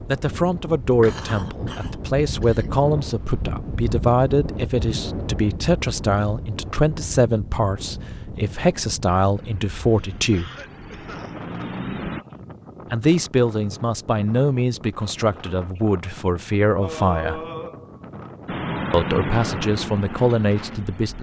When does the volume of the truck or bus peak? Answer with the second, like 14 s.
19 s.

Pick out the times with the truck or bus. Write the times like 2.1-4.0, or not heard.
9.3-12.2, 18.4-21.1.